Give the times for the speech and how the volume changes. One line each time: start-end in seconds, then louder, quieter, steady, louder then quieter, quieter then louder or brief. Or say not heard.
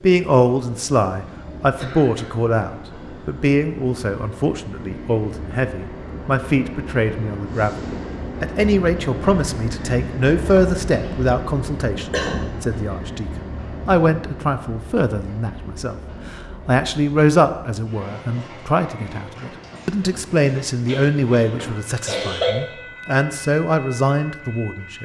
0.0-25.0 steady.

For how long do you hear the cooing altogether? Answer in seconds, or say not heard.
not heard.